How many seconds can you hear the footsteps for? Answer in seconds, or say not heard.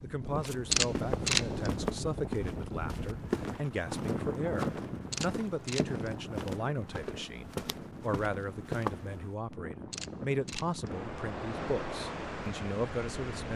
9 s.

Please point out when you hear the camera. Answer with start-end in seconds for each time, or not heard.
0.7-1.8, 5.1-6.0, 9.9-10.8.